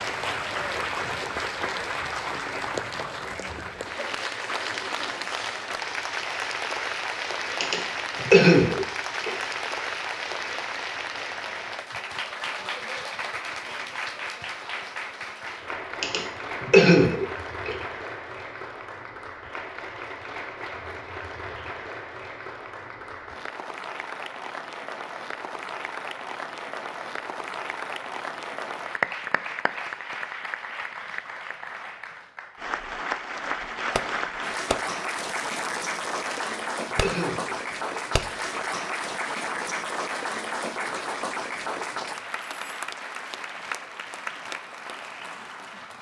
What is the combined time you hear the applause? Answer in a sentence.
The applause can be heard for 46 seconds in total.